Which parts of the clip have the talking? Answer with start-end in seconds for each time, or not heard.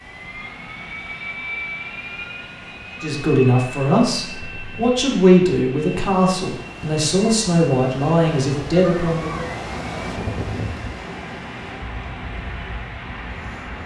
3.0-9.4.